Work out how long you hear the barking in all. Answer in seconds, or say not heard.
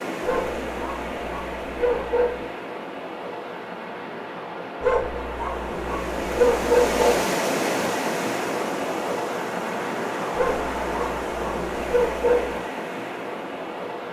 7 s.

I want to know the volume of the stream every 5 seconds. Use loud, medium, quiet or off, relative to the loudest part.
medium, loud, loud.